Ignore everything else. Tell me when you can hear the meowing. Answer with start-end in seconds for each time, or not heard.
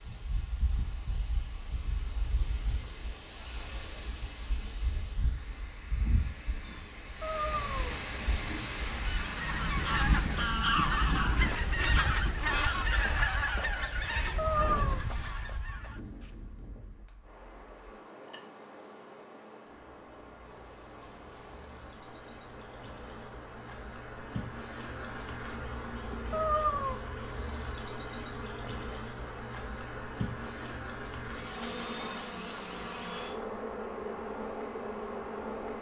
7.2-8.0, 14.3-15.0, 26.3-27.0.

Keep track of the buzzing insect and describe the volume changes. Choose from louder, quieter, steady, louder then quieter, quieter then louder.
louder.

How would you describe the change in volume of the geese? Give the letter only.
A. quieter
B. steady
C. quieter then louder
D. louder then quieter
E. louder
A.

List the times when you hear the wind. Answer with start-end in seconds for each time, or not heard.
0.0-35.7.